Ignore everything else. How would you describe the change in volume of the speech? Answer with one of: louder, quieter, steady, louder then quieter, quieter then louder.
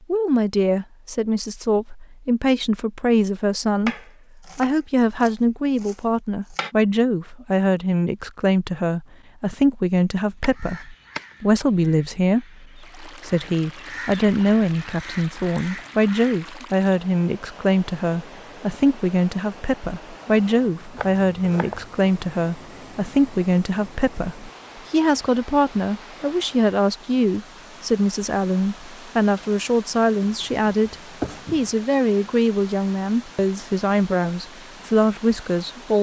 steady.